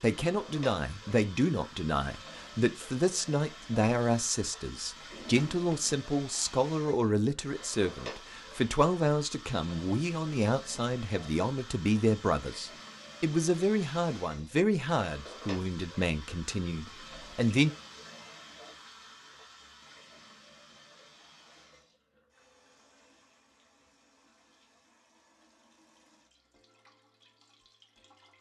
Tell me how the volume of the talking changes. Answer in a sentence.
The volume of the talking stays about the same.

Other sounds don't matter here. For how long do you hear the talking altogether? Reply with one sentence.
You can hear the talking for 18 seconds altogether.